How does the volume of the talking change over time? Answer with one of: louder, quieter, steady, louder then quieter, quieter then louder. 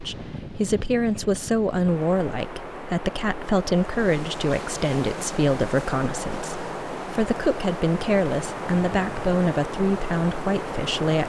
steady.